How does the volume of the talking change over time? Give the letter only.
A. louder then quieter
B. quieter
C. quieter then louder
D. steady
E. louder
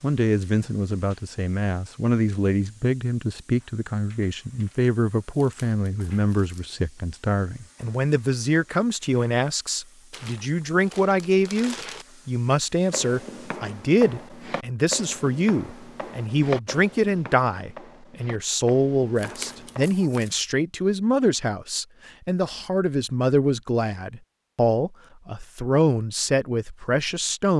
D.